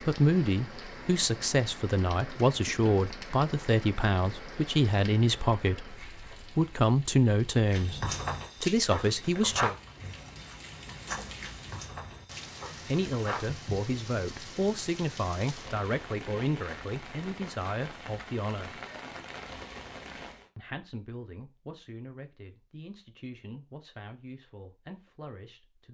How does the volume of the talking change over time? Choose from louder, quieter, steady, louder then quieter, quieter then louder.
quieter.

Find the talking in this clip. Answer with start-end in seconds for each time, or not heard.
0.1-9.8, 12.7-18.8, 20.6-25.8.